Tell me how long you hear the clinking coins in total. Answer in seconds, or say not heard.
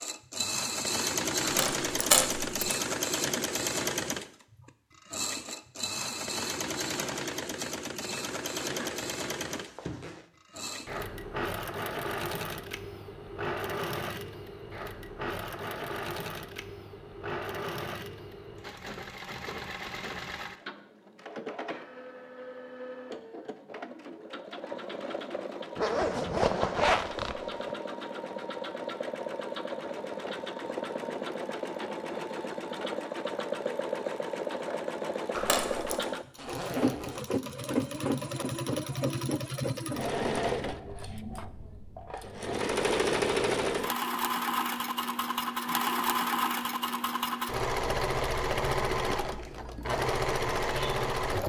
2 s.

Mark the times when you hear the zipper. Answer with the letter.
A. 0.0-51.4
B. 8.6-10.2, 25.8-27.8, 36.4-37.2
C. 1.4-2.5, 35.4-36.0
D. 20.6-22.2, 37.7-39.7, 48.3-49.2
B.